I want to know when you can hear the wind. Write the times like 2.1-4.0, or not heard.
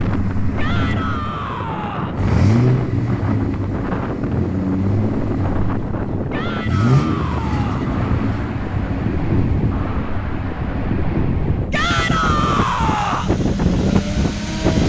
0.0-14.8.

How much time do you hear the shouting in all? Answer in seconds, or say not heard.
5 s.